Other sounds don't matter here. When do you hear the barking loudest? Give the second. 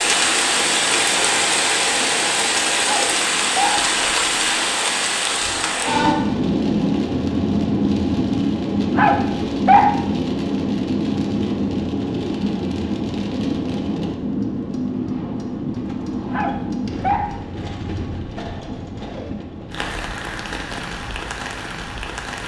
10 s.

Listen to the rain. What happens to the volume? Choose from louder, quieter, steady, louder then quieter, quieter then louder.
quieter.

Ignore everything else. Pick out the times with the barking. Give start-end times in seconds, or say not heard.
2.8-3.9, 8.9-10.0, 16.3-17.4.